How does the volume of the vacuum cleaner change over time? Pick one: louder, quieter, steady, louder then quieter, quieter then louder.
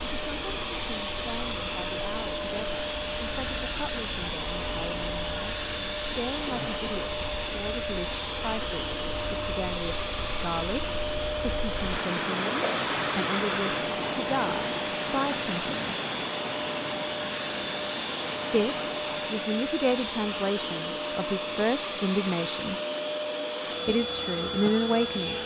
steady.